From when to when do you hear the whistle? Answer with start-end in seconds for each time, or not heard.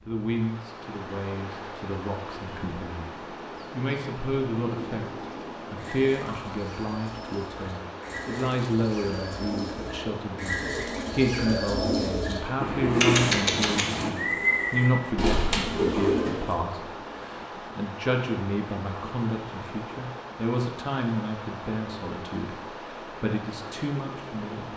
not heard.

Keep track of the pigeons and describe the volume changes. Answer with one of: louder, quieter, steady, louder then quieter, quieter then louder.
louder.